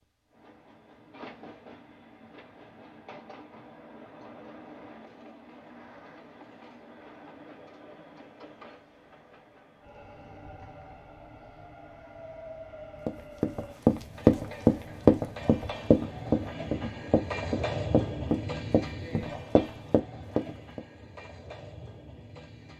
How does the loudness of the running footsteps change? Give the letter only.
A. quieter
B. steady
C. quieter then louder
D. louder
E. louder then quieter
A.